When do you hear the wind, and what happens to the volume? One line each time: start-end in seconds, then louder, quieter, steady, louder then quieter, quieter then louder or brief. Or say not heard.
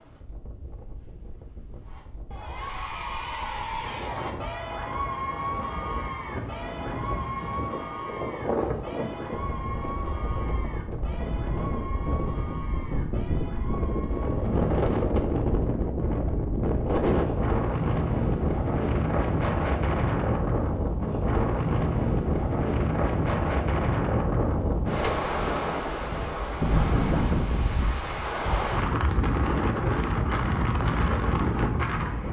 0.0-32.2 louder.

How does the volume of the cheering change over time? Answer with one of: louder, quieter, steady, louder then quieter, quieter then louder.
quieter.